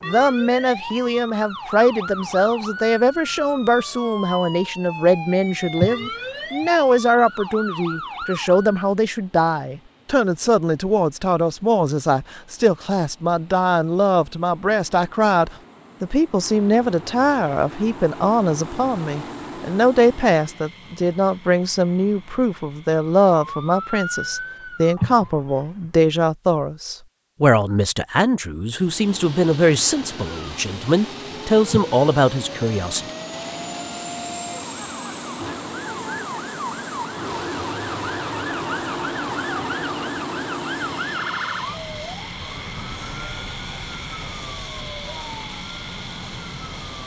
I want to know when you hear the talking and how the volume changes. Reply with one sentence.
The talking can be heard from 0.0 to 33.0 s, at a steady volume.